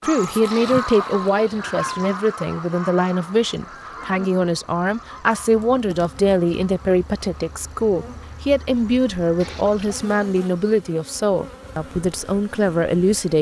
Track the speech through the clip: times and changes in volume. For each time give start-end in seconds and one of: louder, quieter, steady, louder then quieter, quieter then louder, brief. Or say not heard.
0.0-13.3 steady.